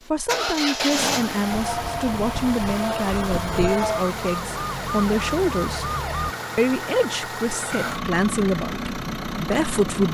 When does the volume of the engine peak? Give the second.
1 s.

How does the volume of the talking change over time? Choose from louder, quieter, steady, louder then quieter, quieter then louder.
steady.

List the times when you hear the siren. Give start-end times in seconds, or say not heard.
1.5-6.3.